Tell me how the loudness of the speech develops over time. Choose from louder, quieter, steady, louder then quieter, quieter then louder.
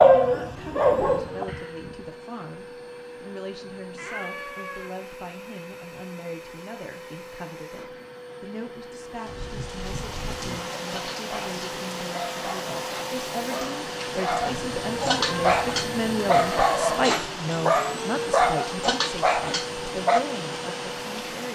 louder.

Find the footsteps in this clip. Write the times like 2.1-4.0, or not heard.
not heard.